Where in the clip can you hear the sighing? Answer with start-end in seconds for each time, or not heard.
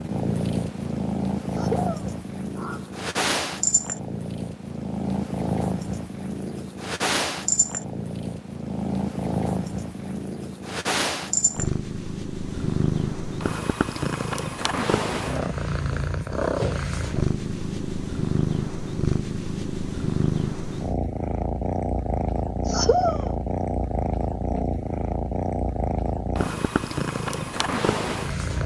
1.5-3.0, 22.6-23.4.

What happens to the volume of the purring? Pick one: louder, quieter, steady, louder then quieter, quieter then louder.
steady.